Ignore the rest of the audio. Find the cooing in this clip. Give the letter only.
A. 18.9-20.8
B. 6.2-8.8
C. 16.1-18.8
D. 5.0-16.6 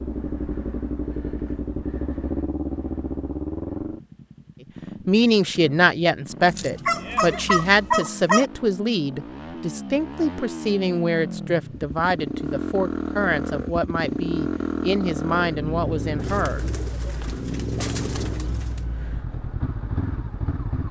C.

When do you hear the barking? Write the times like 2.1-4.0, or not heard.
6.5-8.4.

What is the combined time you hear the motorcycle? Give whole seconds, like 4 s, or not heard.
21 s.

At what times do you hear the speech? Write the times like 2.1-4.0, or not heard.
5.0-16.6.